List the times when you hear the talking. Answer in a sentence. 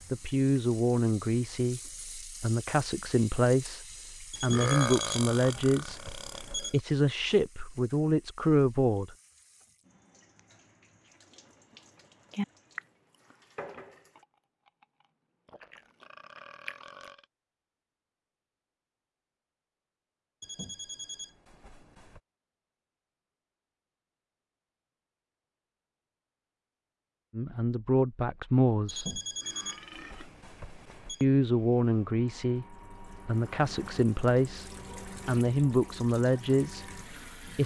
You can hear the talking from 0.1 to 9.2 s, from 27.4 to 29.2 s and from 31.2 to 37.6 s.